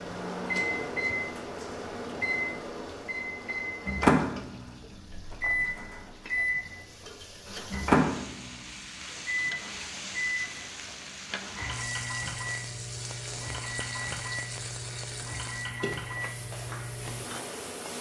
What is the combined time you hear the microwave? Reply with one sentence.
The microwave can be heard for 18 seconds in total.